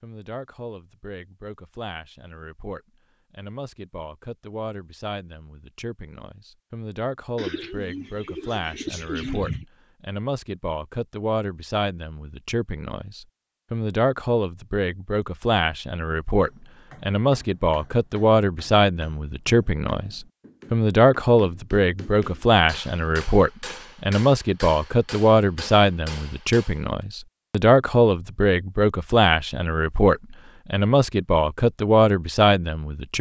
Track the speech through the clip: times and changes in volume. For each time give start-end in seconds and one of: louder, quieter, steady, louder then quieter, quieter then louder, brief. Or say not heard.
0.0-33.1 louder.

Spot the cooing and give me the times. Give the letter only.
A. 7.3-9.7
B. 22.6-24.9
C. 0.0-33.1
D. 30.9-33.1
A.